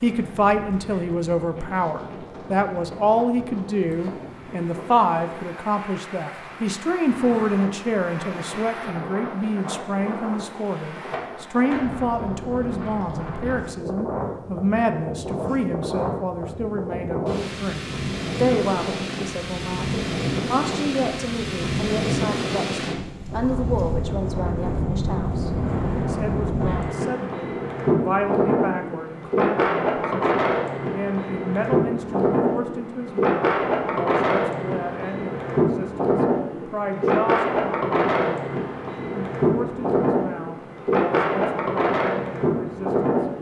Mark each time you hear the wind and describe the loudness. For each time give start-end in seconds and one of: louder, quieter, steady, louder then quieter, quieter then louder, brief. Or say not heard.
0.0-43.3 louder.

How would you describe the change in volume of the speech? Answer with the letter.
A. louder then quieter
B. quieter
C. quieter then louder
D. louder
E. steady
B.